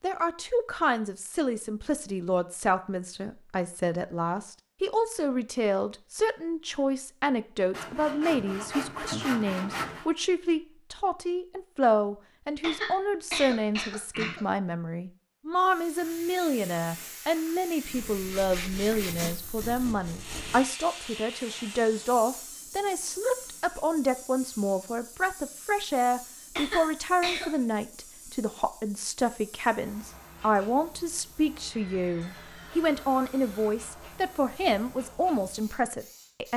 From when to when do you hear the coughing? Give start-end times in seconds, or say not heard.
12.6-14.4, 26.6-27.5.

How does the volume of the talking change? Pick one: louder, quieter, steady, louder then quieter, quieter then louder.
steady.